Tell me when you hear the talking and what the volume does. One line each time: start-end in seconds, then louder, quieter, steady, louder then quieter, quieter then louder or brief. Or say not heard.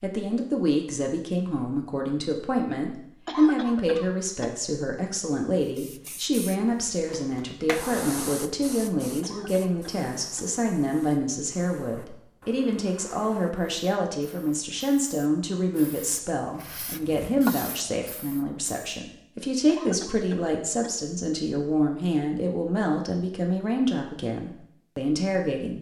0.0-25.7 steady.